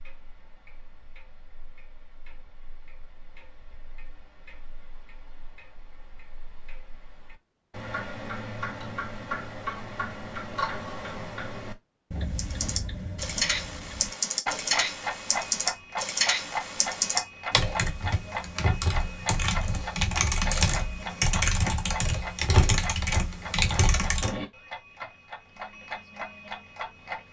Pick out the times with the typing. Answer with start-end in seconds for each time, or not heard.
12.3-24.4.